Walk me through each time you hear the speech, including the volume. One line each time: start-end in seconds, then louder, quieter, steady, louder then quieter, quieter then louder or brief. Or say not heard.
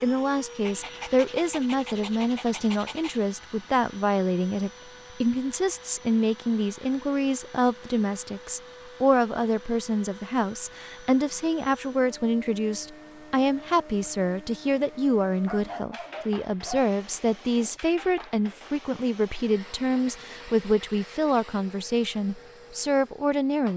0.0-23.7 steady.